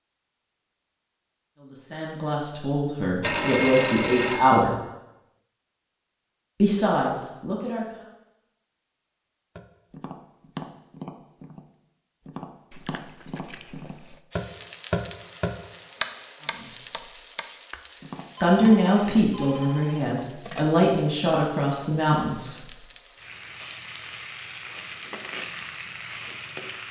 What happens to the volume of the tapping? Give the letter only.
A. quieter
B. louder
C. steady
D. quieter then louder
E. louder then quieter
E.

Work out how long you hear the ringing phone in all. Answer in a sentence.
The ringing phone can be heard for 4 seconds in total.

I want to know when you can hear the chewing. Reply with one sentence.
The chewing can be heard from 12.7 to 14.2 s.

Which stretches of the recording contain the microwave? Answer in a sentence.
You can't hear the microwave here.